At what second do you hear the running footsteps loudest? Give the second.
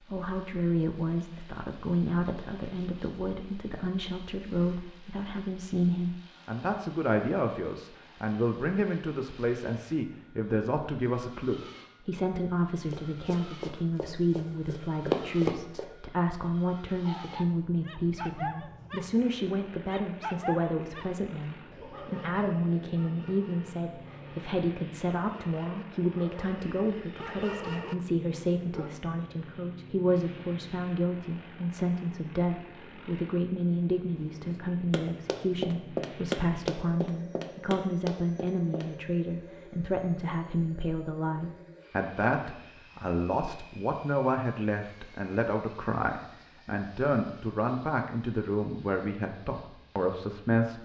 15 s.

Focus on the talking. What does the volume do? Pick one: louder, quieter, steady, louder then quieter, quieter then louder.
steady.